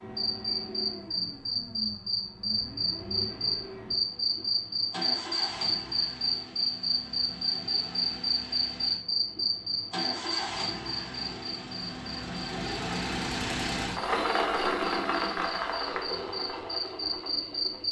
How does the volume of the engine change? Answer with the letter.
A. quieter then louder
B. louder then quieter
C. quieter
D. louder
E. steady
D.